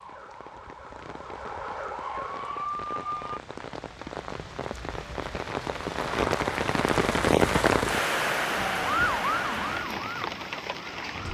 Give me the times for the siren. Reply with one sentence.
You can hear the siren from 0.0 to 3.4 s and from 8.6 to 11.3 s.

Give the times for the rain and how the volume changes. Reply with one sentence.
You can hear the rain from 0.0 to 11.3 s, getting louder then quieter.